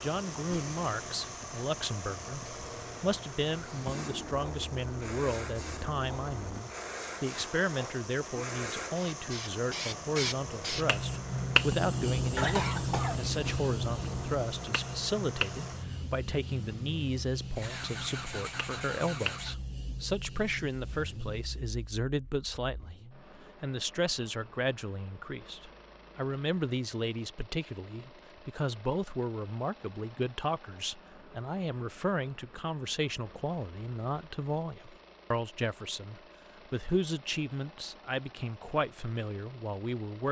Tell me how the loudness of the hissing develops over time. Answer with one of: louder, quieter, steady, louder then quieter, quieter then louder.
louder then quieter.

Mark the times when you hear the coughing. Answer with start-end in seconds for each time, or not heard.
12.3-13.7.